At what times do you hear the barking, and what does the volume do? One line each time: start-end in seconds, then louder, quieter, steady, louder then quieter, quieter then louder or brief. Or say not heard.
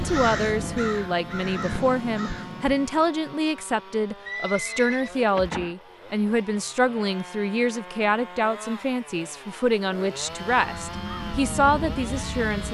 not heard.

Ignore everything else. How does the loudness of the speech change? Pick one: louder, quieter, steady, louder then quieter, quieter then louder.
steady.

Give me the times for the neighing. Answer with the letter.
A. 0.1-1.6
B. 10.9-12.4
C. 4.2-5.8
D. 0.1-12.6
C.